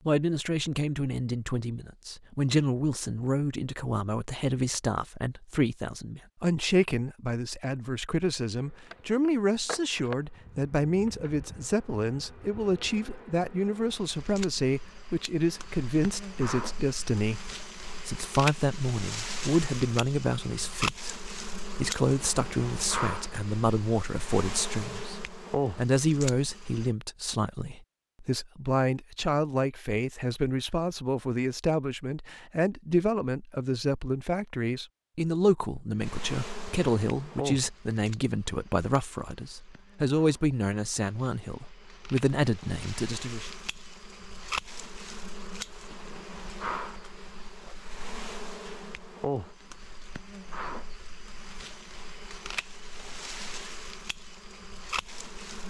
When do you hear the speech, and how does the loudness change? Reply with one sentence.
The speech can be heard from 0.1 to 43.5 s, at a steady volume.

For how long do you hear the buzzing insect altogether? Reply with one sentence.
The buzzing insect can be heard for 38 seconds in total.